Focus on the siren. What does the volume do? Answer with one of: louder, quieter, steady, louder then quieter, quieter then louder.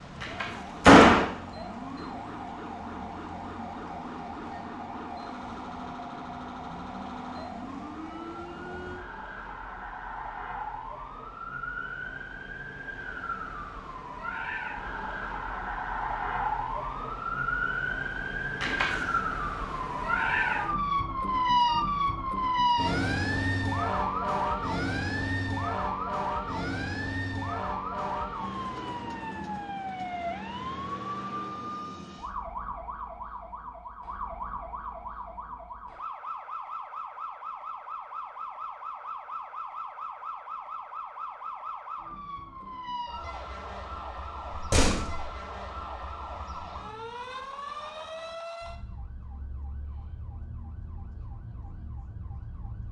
louder then quieter.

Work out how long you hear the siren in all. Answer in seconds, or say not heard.
53 s.